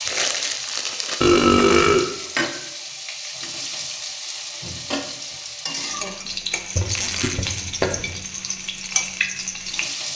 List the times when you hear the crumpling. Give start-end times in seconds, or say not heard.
0.1-1.2, 6.8-7.4.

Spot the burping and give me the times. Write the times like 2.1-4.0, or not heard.
1.2-2.1, 6.8-8.2.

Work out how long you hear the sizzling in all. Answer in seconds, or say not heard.
10 s.